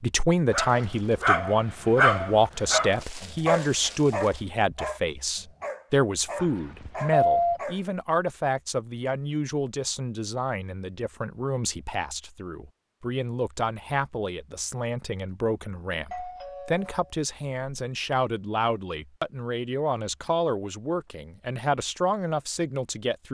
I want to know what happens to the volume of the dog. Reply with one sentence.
The volume of the dog goes down.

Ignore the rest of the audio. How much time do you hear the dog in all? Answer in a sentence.
The dog can be heard for 7 seconds in total.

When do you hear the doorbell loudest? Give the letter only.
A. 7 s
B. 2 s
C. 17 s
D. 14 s
A.